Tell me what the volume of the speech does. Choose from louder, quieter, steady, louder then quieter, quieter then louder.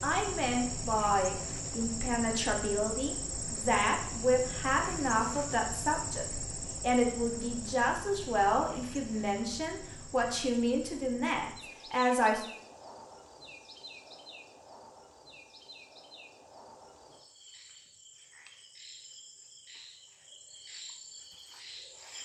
steady.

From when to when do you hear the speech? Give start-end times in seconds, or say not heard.
0.0-12.4.